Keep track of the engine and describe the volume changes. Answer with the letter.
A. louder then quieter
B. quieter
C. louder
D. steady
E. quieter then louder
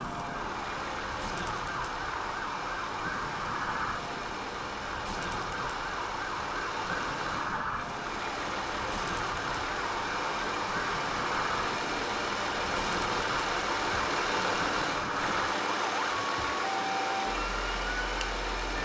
C.